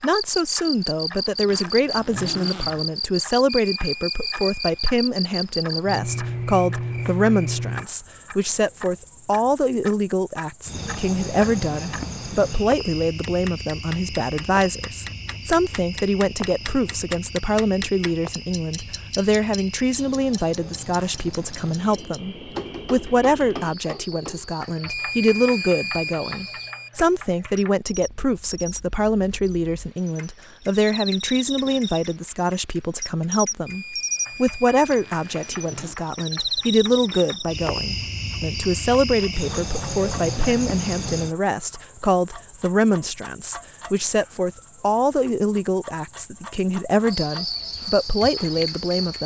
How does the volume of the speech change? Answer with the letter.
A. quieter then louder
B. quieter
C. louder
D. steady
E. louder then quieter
D.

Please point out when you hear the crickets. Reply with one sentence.
You can hear the crickets from 0.1 to 49.2 s.